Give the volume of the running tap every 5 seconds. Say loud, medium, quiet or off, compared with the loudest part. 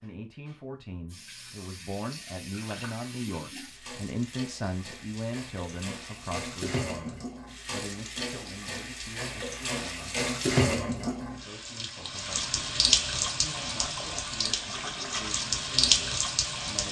quiet, medium, loud, loud.